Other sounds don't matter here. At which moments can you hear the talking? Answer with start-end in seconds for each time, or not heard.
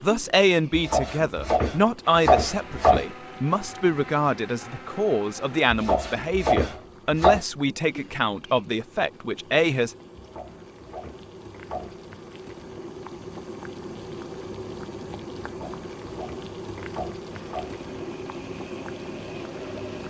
0.0-9.9.